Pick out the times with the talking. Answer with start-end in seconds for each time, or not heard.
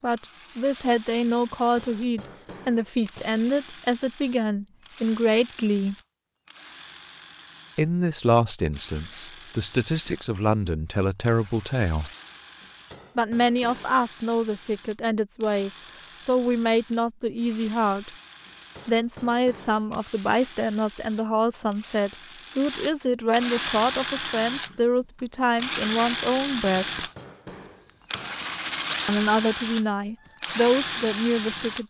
0.0-6.0, 7.8-12.1, 13.2-18.1, 18.9-27.1, 29.1-31.8.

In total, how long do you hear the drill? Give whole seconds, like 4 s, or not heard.
32 s.